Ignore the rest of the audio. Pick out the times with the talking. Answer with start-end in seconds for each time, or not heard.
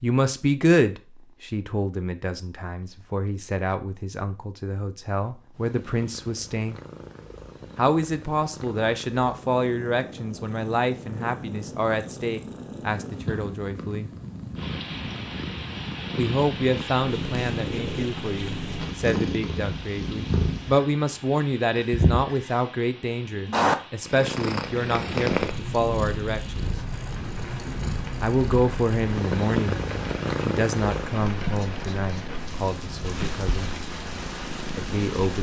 0.0-6.8, 7.8-14.1, 16.1-26.7, 28.2-33.7, 34.8-35.3.